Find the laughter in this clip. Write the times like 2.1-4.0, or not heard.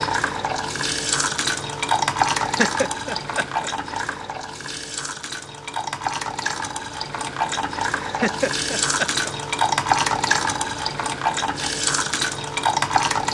2.4-4.0, 8.0-9.3.